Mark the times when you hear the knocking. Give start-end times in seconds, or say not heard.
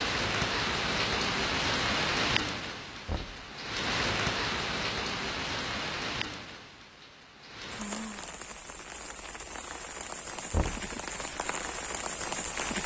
3.0-3.5, 10.5-10.9.